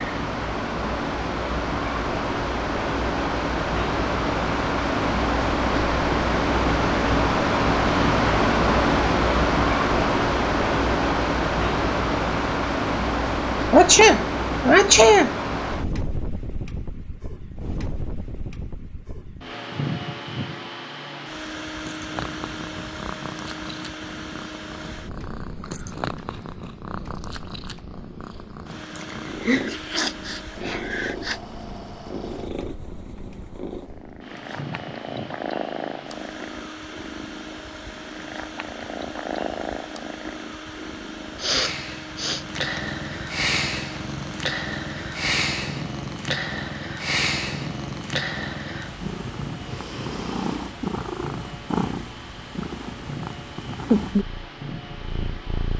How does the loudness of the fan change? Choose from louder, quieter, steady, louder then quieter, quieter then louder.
quieter.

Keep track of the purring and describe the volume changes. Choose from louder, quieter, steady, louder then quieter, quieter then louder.
louder.